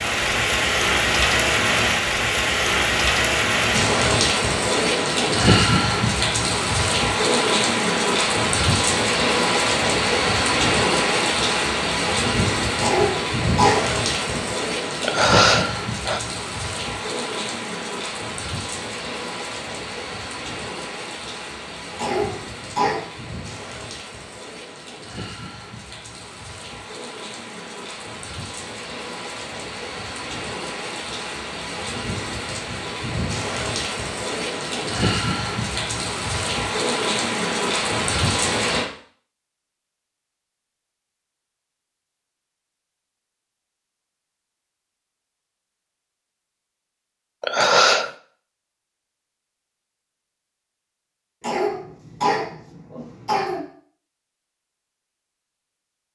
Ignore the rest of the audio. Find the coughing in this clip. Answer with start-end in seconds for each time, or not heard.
12.8-14.5, 21.9-23.1, 51.4-53.6.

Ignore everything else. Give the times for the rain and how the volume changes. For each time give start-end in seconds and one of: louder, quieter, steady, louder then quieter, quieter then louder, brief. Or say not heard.
0.0-38.9 quieter then louder.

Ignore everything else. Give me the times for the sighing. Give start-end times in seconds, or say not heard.
15.0-16.2, 47.4-48.1.